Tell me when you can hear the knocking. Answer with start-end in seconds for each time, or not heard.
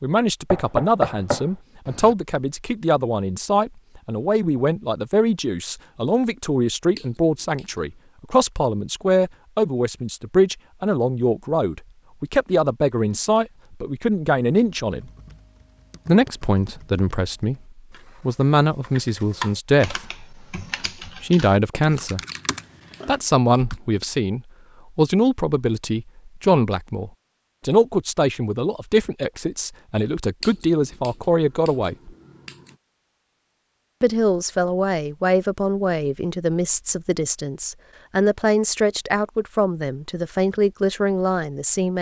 0.5-2.1.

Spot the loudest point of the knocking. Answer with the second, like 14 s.
1 s.